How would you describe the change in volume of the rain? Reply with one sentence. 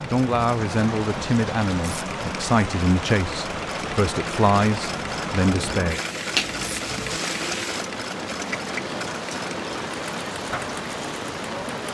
The loudness of the rain stays about the same.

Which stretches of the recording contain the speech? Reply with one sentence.
You can hear the speech from 0.1 to 6.0 s.